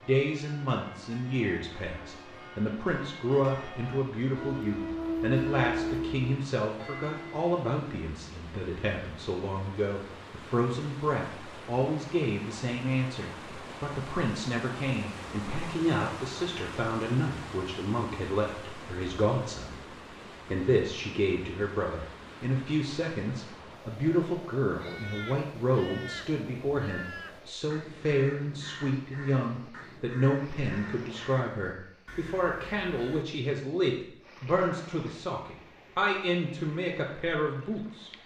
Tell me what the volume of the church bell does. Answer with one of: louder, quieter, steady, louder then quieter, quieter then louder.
louder.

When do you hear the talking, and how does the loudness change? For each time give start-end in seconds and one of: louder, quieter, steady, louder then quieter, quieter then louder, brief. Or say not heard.
0.1-38.1 steady.